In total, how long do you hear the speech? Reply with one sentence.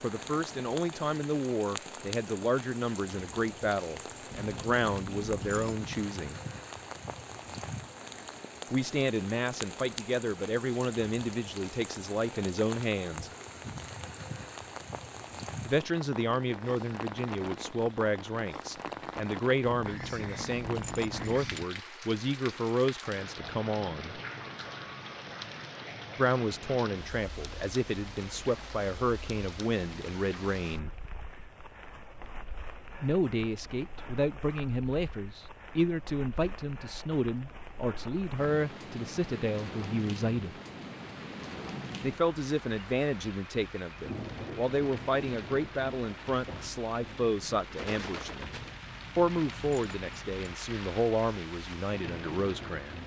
You can hear the speech for 43 seconds altogether.